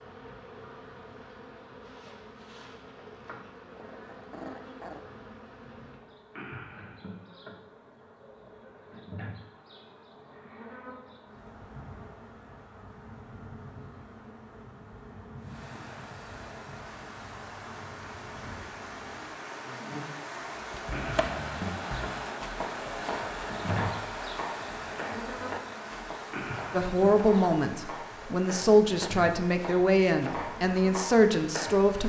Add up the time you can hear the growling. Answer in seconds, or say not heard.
2 s.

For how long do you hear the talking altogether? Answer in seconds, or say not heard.
5 s.